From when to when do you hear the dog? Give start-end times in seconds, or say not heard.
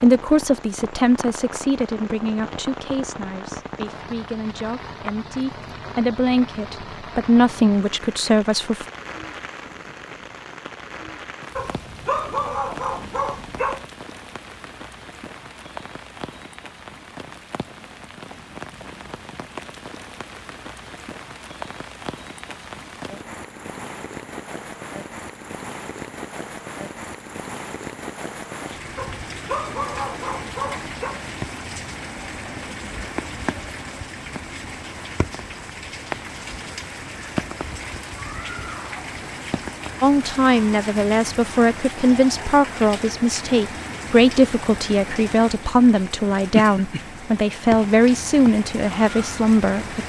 11.6-13.8, 28.9-31.2.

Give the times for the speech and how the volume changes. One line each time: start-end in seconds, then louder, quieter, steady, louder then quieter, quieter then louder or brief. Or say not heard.
0.0-8.8 quieter then louder
40.0-50.0 steady.